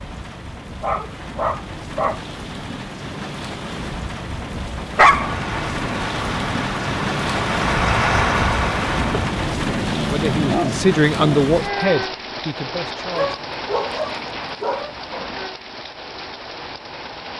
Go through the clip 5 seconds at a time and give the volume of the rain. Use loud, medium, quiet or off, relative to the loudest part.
medium, loud, loud, medium.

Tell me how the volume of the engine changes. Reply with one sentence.
The loudness of the engine goes up.